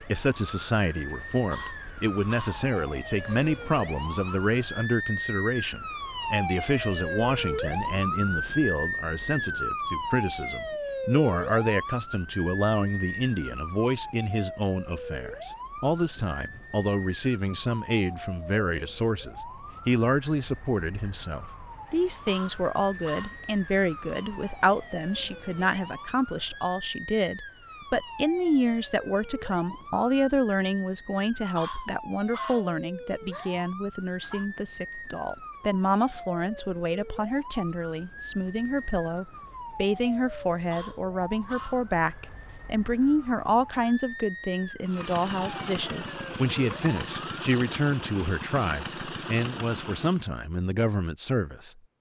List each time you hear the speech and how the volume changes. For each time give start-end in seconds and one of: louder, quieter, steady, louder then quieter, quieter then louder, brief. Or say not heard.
0.1-51.8 steady.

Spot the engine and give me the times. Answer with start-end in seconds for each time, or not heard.
44.9-50.2.